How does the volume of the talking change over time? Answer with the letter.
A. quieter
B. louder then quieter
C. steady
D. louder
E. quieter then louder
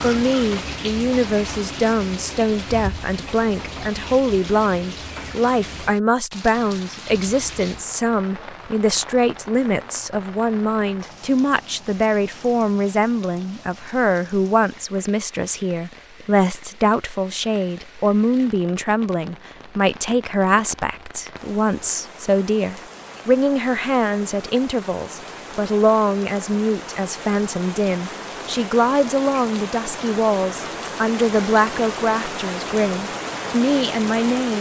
C.